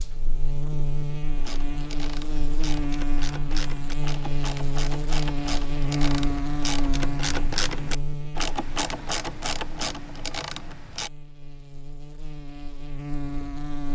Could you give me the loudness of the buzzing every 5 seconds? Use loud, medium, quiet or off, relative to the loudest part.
loud, loud, medium.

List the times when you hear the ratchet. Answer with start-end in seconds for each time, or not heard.
1.3-11.1.